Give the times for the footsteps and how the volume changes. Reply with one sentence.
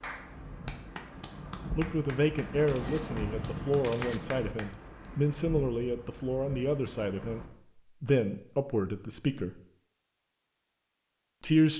The footsteps can't be heard in this clip.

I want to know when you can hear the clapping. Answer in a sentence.
The clapping can be heard from 0.0 to 5.1 s.